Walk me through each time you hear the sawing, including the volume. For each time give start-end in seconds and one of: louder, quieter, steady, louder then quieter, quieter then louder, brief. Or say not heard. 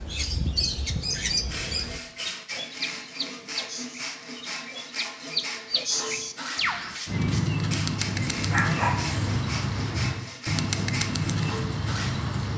1.4-12.3 steady.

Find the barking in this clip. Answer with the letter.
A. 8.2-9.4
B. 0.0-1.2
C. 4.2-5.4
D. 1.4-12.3
A.